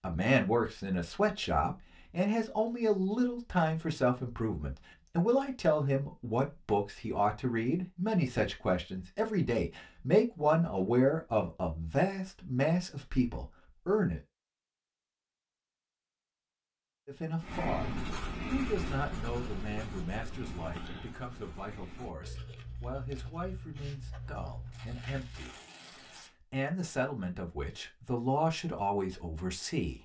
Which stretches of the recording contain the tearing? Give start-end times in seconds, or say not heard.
24.7-26.4.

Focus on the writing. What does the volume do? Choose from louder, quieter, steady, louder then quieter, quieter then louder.
quieter.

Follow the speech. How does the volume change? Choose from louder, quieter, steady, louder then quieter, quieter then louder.
quieter then louder.